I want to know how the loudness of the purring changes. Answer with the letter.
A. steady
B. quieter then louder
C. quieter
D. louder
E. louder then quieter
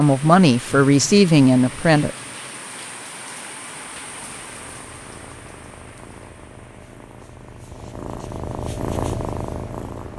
D.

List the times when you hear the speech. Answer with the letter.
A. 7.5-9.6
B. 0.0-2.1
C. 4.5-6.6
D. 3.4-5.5
B.